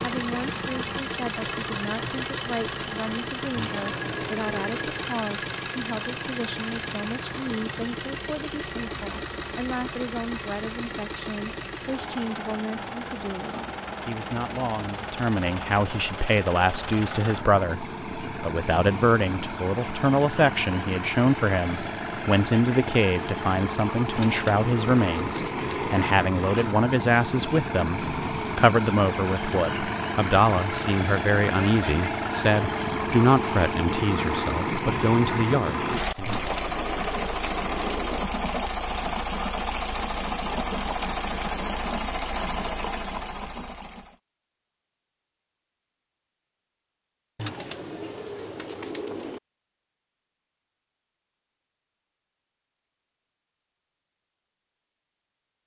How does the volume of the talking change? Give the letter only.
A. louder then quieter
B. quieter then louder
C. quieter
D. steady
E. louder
E.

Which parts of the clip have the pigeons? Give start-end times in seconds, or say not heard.
3.5-5.1, 24.1-26.1, 36.2-38.2, 47.4-49.4.